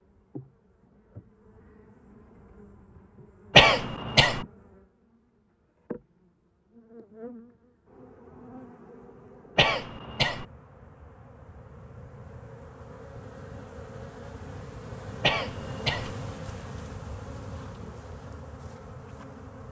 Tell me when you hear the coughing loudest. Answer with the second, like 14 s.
4 s.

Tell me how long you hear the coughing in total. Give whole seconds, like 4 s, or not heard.
3 s.